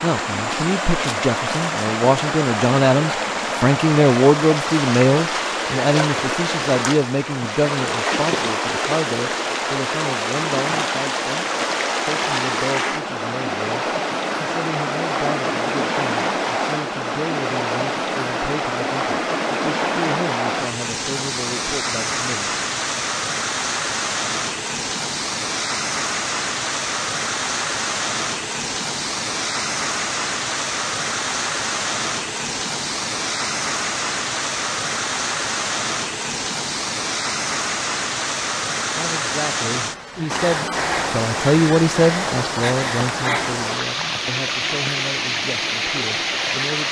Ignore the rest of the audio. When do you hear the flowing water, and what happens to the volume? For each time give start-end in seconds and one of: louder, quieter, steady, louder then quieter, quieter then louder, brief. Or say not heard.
0.0-46.8 steady.